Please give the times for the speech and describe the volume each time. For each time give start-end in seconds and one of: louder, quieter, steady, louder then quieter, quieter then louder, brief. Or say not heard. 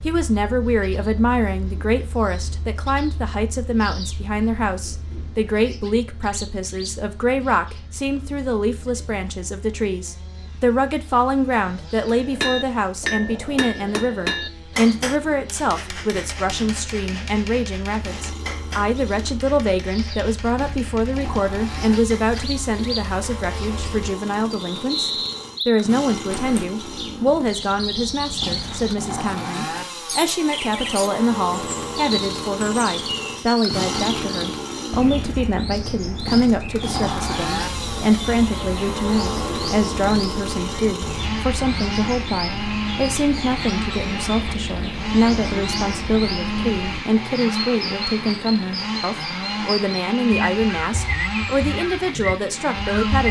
0.0-53.2 steady.